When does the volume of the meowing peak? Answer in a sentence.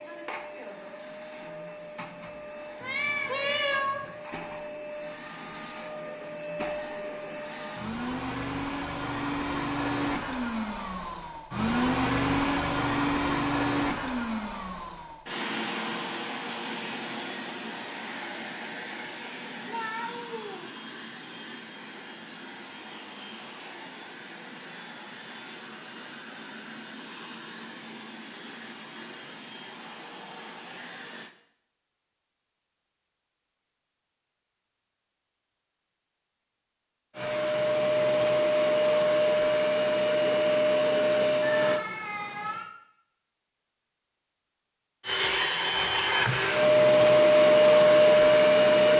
The volume of the meowing peaks at 4 seconds.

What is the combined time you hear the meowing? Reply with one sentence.
The meowing can be heard for 4 seconds in total.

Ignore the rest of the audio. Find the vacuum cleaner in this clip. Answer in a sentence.
The vacuum cleaner can be heard from 0.0 to 31.4 s, from 37.1 to 41.9 s and from 45.0 to 48.9 s.